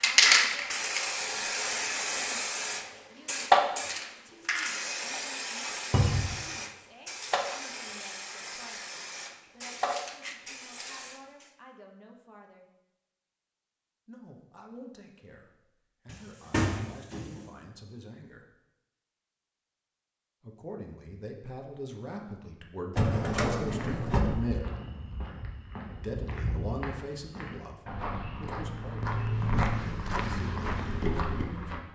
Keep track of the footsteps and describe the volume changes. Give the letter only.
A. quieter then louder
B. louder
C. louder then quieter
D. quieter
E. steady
B.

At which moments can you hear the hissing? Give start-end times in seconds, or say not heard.
0.0-11.6.